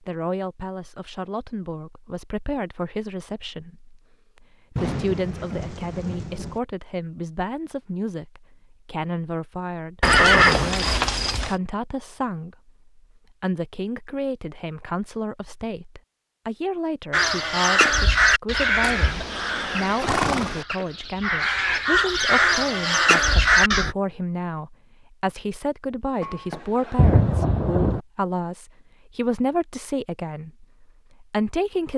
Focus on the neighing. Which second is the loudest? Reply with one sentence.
The loudest moment of the neighing is at 10 seconds.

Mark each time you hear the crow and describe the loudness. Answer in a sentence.
The crow can be heard from 17.1 to 23.9 s, getting quieter then louder.